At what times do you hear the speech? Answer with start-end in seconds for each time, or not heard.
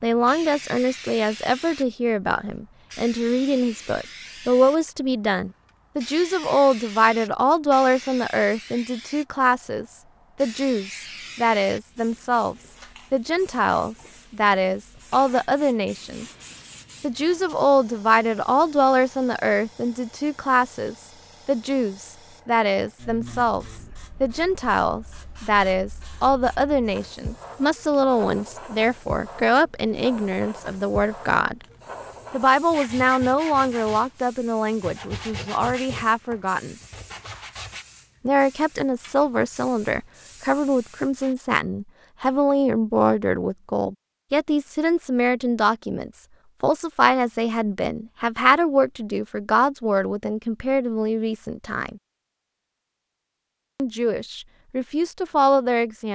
0.0-16.2, 17.0-31.6, 32.3-36.8, 38.2-52.0, 53.8-56.0.